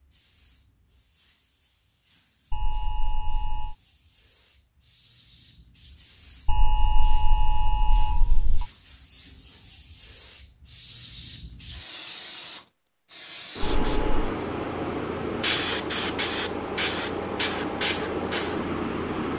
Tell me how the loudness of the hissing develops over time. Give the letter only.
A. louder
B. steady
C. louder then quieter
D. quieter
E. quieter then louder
A.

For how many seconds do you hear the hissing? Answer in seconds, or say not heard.
19 s.